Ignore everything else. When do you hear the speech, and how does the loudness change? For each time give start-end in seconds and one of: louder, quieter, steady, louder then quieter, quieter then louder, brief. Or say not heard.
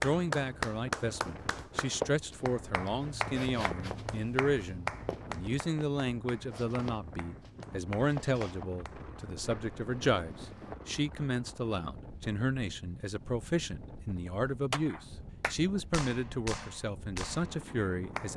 0.0-18.3 steady.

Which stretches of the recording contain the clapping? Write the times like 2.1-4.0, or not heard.
0.0-9.1, 14.7-18.3.